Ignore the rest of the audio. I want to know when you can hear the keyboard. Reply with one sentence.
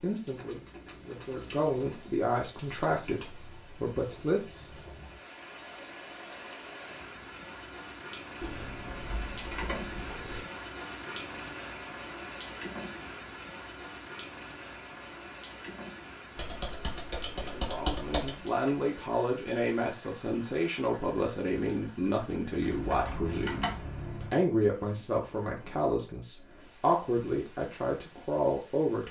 The keyboard can be heard from 0.3 to 2.0 s, from 8.4 to 10.4 s, from 16.4 to 18.4 s and from 22.6 to 24.4 s.